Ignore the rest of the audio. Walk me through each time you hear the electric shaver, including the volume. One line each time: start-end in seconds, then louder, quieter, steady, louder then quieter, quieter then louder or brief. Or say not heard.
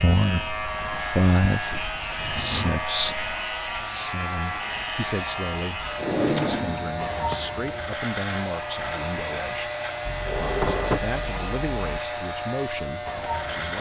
0.0-13.7 steady.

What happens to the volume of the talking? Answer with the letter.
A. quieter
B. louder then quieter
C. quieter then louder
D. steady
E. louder
A.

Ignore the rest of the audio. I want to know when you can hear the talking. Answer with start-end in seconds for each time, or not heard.
0.0-9.7, 10.5-13.7.